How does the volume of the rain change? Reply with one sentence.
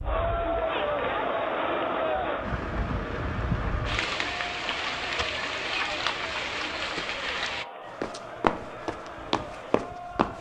The volume of the rain goes up.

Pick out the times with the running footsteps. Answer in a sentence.
You can hear the running footsteps from 8.0 to 10.3 s.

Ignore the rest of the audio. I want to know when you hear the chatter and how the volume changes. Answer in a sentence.
The chatter can be heard from 0.0 to 10.3 s, getting quieter.